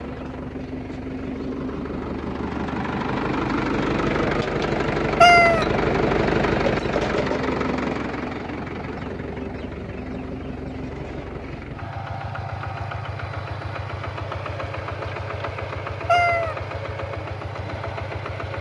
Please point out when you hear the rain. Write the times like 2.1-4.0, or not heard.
not heard.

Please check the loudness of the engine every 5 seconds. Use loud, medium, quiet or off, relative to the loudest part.
loud, loud, medium, medium.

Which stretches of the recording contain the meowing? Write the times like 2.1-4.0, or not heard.
5.2-5.7, 16.1-16.6.